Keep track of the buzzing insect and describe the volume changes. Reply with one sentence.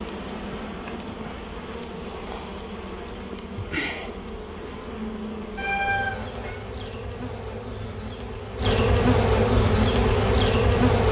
The volume of the buzzing insect goes up.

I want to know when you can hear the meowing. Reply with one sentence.
The meowing can be heard from 5.5 to 6.5 s.